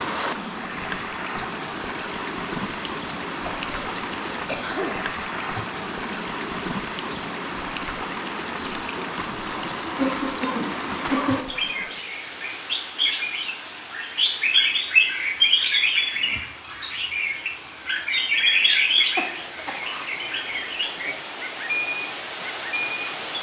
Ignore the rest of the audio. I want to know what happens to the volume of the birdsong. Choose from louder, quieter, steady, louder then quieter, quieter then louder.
louder.